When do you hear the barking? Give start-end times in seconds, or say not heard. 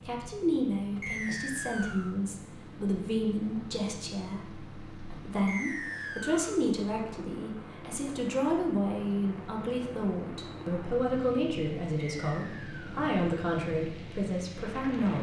not heard.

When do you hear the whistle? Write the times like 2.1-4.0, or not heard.
1.0-2.1, 5.5-6.6, 12.2-13.1.